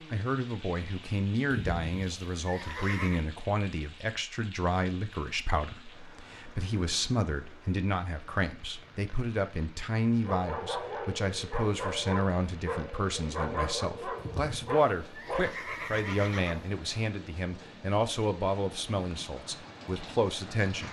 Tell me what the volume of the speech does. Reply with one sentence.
The volume of the speech stays about the same.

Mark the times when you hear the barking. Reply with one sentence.
The barking can be heard from 10.2 to 15.5 s.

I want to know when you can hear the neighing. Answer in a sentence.
The neighing can be heard from 1.5 to 3.2 s and from 14.2 to 16.7 s.